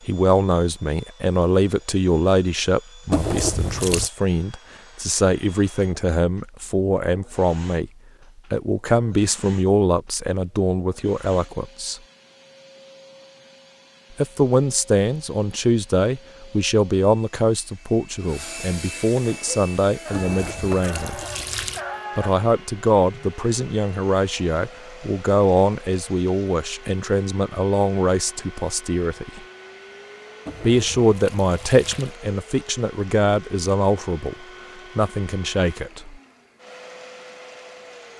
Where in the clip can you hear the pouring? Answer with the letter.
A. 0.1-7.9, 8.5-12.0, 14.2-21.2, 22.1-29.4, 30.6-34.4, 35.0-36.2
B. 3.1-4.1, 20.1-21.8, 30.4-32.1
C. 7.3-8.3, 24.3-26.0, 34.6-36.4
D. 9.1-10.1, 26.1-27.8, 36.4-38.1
B.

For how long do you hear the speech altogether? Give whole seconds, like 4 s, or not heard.
31 s.